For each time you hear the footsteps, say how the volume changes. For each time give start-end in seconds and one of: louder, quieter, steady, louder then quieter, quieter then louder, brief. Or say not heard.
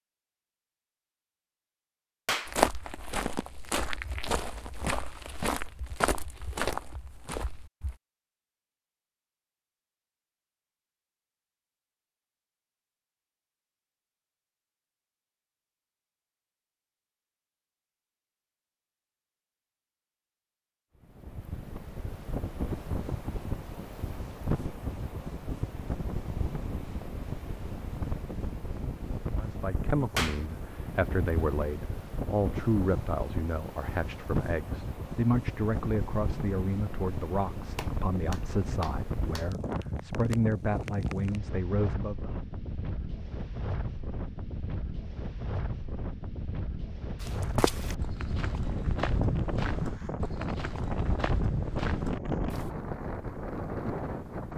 2.5-8.0 steady
47.2-52.8 steady.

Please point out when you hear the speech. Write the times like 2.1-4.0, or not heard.
29.4-42.3.